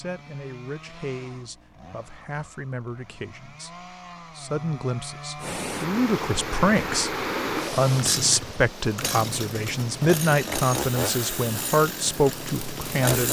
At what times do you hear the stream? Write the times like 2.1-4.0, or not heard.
5.3-13.1.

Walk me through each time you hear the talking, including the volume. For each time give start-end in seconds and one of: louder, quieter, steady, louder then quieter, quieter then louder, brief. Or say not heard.
0.0-13.2 louder.